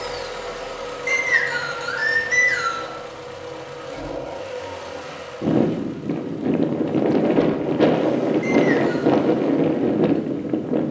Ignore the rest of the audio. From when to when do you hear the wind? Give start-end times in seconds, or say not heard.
5.4-10.8.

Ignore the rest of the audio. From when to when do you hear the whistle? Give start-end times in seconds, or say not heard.
1.1-2.9, 8.4-9.1.